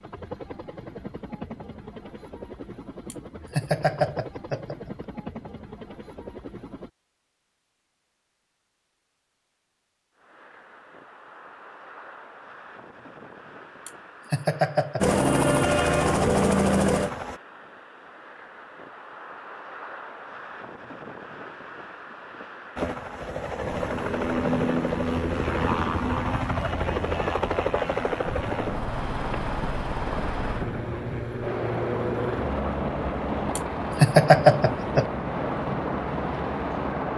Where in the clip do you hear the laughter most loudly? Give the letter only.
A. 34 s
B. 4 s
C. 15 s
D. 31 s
A.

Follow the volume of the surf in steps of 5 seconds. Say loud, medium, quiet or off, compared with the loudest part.
off, off, quiet, quiet, medium, medium, loud, loud.